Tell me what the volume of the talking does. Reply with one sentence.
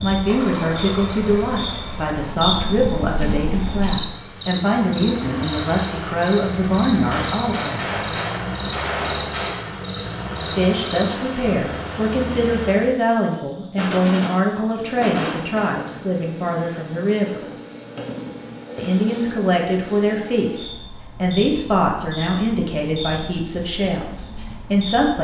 The volume of the talking stays about the same.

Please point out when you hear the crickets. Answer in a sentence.
The crickets can be heard from 0.0 to 25.2 s.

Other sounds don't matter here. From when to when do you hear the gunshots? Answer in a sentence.
You can hear the gunshots from 7.1 to 9.7 s and from 13.8 to 15.7 s.